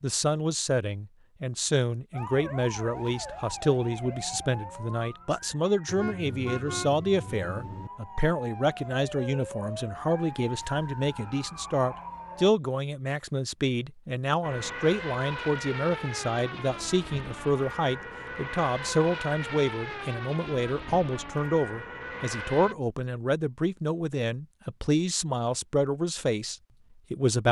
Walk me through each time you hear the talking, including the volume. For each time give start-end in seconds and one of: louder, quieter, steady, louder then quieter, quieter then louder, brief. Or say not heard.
0.0-27.4 steady.